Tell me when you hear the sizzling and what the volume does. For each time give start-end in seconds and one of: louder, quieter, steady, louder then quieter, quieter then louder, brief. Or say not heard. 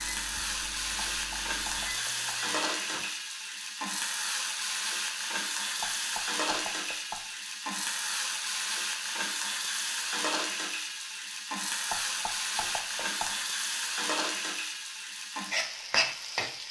0.0-16.6 steady.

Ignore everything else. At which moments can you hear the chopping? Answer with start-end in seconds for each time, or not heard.
1.1-2.5, 5.8-7.3, 11.9-13.4.